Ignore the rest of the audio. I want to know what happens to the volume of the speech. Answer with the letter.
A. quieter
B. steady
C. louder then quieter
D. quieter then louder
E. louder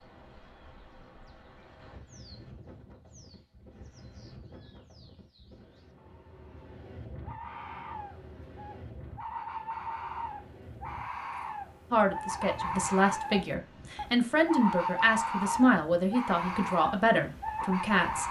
B.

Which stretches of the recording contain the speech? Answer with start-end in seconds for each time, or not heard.
11.9-18.2.